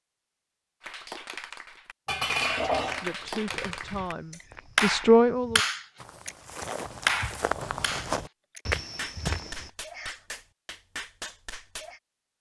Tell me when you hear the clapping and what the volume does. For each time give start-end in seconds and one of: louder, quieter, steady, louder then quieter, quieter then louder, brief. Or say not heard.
0.8-12.0 louder then quieter.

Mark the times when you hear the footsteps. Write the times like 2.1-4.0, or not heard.
3.6-9.7.